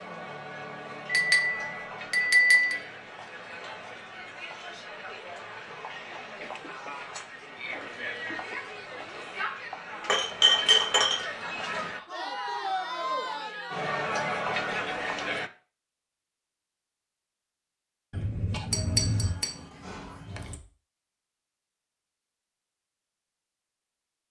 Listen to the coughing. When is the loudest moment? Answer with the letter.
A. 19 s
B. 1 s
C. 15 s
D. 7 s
A.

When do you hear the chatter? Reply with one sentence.
You can hear the chatter from 0.0 to 15.5 s.